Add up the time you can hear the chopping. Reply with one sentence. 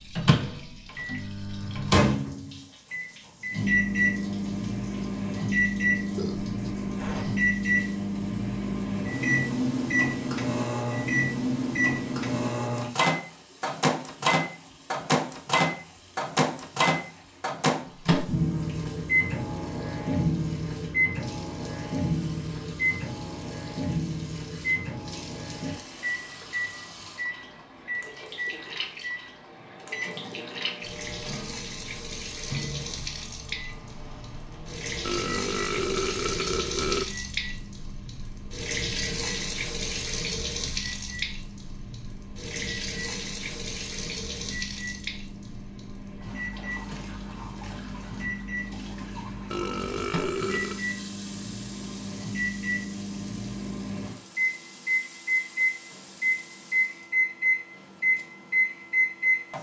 The chopping can't be heard in this clip.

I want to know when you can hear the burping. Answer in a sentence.
You can hear the burping from 6.0 to 7.5 s, from 35.0 to 37.0 s and from 49.5 to 50.8 s.